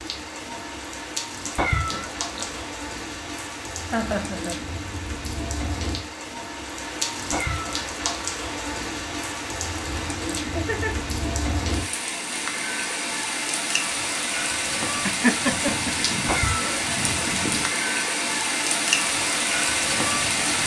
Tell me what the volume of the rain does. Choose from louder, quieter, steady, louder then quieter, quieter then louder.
louder.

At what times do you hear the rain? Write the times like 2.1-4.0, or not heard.
0.0-20.6.